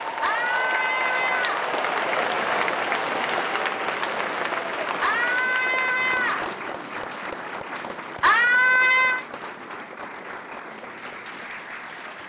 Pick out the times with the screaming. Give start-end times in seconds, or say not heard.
0.2-1.7, 5.0-6.5, 8.2-9.2.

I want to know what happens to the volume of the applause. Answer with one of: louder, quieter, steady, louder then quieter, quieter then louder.
quieter.